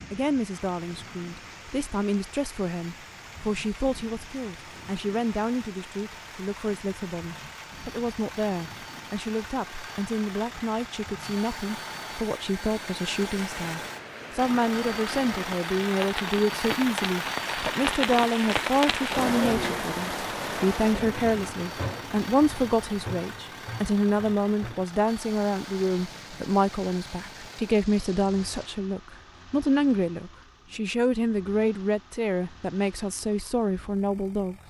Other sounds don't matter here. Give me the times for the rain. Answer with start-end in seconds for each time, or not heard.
0.0-28.7.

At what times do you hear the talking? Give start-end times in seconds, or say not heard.
0.1-34.5.